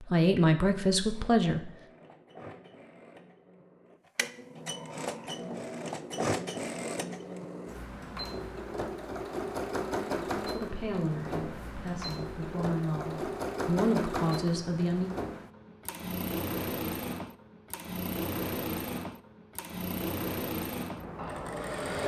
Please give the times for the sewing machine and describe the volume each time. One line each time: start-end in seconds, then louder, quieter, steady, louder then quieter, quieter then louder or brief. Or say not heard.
0.0-22.0 louder.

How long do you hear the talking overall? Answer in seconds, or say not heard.
6 s.